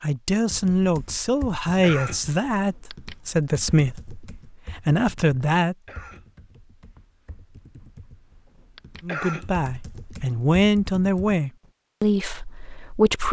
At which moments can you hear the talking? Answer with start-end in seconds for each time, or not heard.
0.0-5.8, 9.0-13.2.